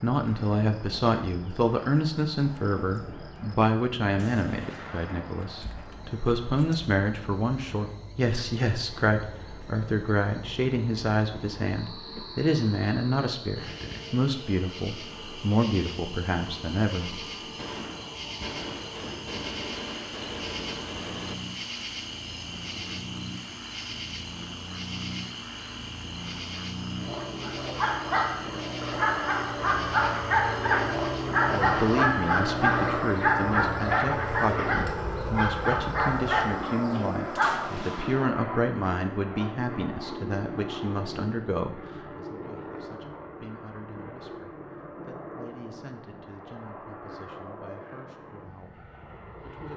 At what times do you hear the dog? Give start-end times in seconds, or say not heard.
27.4-37.8.